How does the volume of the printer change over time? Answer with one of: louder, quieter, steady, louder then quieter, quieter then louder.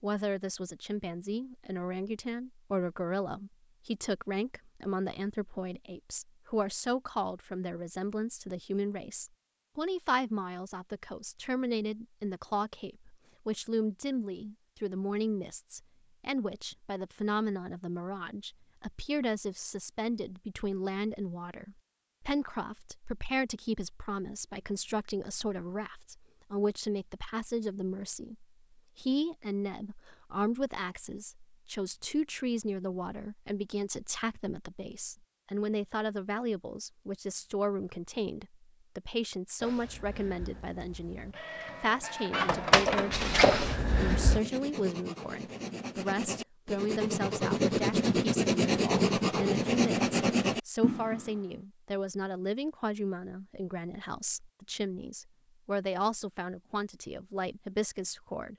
louder.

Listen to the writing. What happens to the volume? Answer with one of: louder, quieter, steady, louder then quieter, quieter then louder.
louder.